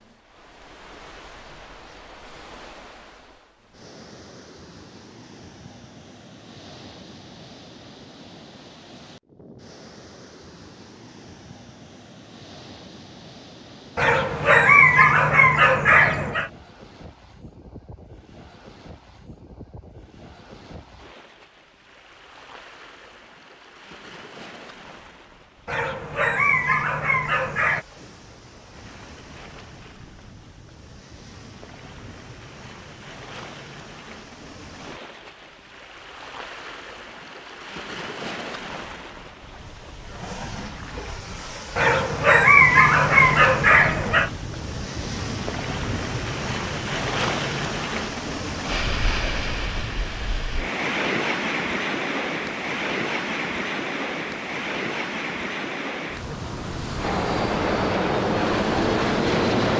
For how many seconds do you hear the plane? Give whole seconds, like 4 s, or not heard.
3 s.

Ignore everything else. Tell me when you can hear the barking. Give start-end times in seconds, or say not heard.
13.9-16.5, 25.6-27.9, 41.8-44.3.